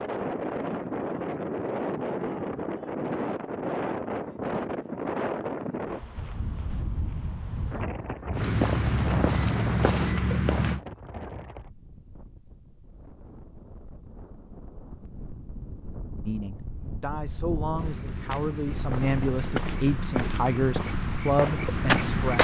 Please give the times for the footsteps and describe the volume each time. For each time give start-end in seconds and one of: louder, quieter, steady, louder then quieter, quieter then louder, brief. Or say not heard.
8.3-10.8 brief
17.8-22.3 louder.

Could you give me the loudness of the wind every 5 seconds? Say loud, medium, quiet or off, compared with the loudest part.
loud, loud, quiet, medium, off.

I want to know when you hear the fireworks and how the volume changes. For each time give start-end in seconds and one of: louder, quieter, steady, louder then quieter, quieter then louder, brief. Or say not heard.
not heard.